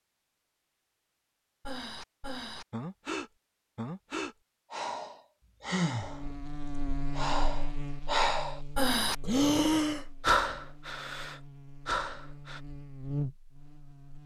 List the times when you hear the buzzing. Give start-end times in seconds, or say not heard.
6.0-14.2.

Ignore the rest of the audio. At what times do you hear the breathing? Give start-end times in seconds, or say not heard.
1.6-12.6.